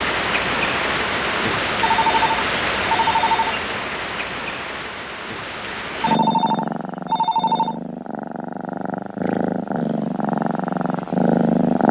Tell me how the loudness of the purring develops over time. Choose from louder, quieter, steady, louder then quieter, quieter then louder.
louder.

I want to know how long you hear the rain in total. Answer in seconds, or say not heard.
6 s.